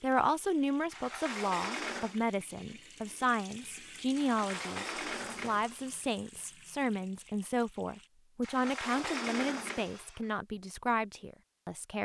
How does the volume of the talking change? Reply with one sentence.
The loudness of the talking stays about the same.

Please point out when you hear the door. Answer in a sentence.
You can hear the door from 0.9 to 2.2 s, from 4.2 to 6.0 s and from 8.4 to 10.2 s.